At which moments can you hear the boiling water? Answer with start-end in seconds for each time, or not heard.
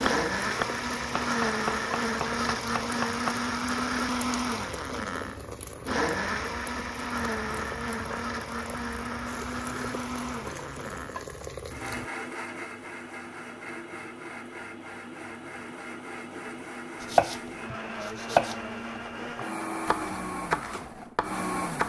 0.0-12.1.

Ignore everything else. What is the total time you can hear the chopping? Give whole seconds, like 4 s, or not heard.
8 s.